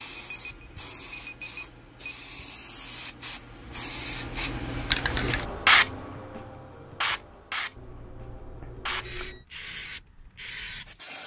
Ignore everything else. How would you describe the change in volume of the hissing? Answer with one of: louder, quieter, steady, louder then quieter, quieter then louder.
louder then quieter.